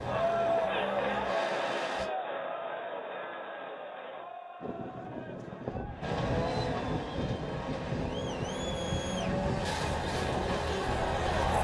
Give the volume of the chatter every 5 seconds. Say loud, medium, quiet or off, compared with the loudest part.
loud, medium, loud.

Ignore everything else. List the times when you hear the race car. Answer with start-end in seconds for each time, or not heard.
0.0-2.1, 6.0-11.5.